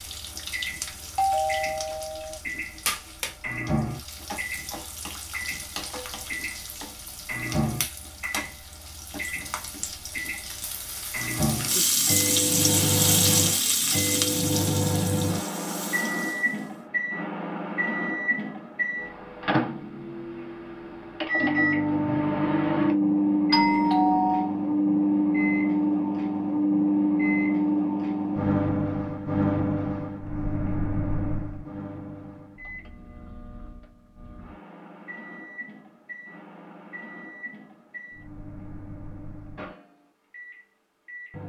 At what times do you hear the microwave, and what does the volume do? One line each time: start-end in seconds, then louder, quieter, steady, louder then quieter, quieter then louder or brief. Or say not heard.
0.0-41.4 louder then quieter.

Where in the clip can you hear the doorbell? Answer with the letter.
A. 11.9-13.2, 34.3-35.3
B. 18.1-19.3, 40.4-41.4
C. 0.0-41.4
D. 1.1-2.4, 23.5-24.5
D.